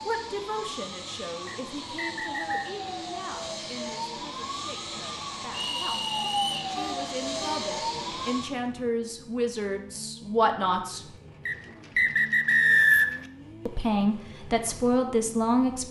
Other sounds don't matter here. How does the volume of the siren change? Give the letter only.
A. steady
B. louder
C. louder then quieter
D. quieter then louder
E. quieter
B.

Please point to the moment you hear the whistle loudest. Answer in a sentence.
The loudest moment of the whistle is at 13 seconds.